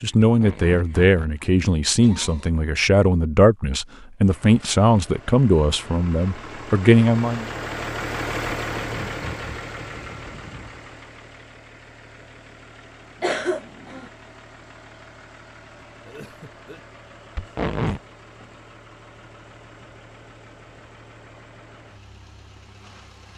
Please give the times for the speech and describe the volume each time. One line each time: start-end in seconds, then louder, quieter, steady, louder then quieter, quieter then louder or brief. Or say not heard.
0.0-7.5 steady.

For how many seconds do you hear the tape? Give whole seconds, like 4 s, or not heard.
3 s.